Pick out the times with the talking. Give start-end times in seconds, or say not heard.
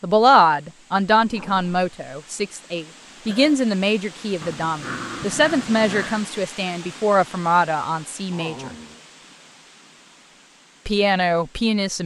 0.0-8.7, 10.8-12.0.